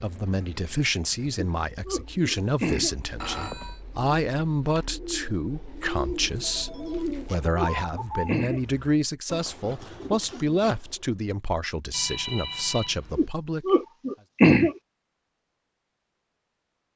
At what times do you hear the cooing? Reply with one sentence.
The cooing can be heard from 1.8 to 11.1 s.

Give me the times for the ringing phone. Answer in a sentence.
The ringing phone can be heard from 3.2 to 3.8 s, from 6.4 to 7.3 s and from 11.9 to 13.3 s.